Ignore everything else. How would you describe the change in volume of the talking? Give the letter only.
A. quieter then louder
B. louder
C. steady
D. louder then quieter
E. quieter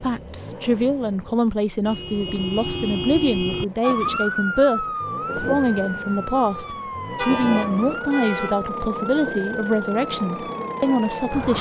C.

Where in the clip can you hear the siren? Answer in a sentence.
The siren can be heard from 3.8 to 11.5 s.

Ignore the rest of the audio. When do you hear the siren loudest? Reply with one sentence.
The volume of the siren peaks at 4 seconds.